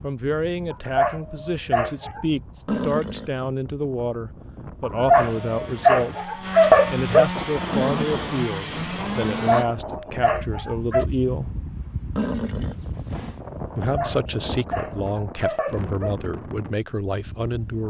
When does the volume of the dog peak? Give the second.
7 s.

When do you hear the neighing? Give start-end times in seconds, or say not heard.
2.6-3.3, 7.7-8.9, 12.2-13.4.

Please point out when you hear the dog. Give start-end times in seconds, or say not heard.
0.7-2.2, 4.8-7.3, 9.4-11.1, 13.9-16.1.